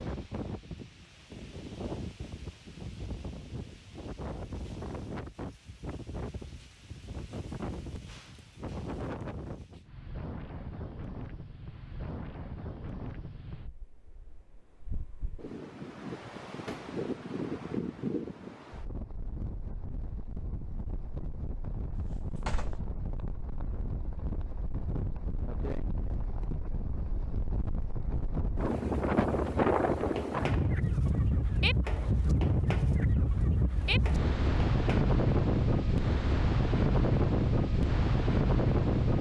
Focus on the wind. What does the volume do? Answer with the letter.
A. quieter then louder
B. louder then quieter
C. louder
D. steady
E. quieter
C.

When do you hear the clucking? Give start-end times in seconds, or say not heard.
29.9-35.0.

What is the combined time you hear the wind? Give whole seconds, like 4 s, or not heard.
39 s.